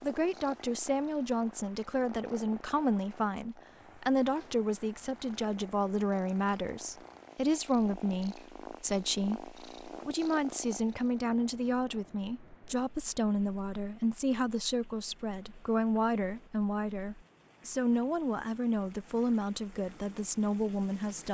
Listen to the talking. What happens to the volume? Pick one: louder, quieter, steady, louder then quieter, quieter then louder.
steady.